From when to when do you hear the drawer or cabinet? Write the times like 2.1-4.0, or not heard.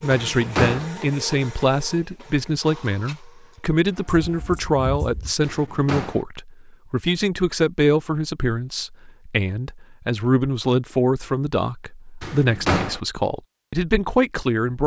0.1-0.9, 5.4-6.2, 12.2-13.0.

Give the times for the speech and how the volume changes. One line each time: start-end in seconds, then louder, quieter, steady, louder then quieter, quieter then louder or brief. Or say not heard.
0.0-14.8 steady.